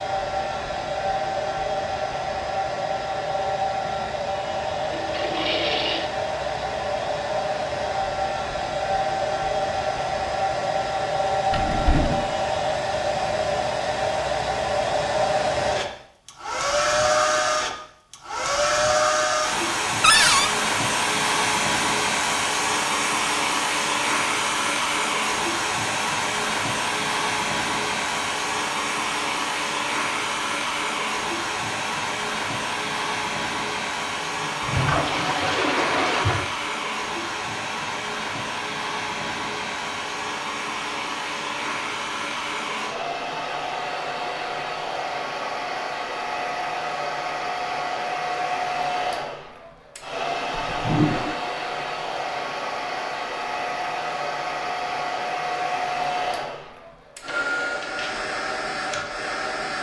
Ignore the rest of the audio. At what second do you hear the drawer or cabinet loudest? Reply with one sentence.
The volume of the drawer or cabinet peaks at 20 seconds.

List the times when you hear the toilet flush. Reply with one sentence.
You can hear the toilet flush from 4.9 to 6.1 s, from 34.1 to 36.5 s and from 50.5 to 51.4 s.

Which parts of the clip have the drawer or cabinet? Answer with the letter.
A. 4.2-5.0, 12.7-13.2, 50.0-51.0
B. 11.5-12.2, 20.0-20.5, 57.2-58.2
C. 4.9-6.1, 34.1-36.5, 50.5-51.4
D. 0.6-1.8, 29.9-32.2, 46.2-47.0
B.